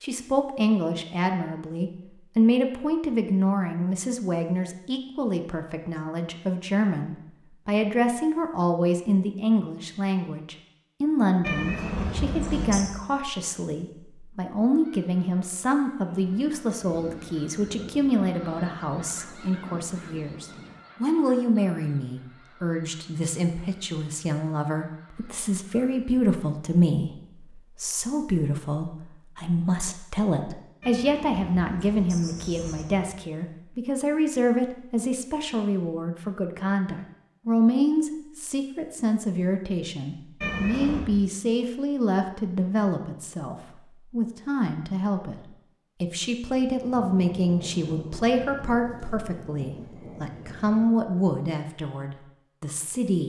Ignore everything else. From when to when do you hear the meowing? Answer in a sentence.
You can hear the meowing from 11.4 to 12.9 s, from 30.8 to 33.1 s and from 40.4 to 41.1 s.